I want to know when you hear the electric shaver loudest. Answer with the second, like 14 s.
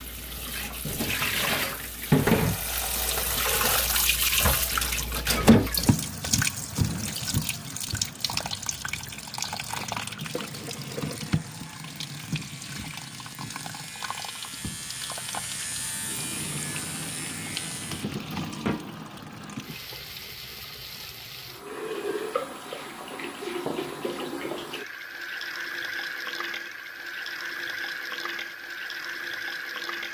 16 s.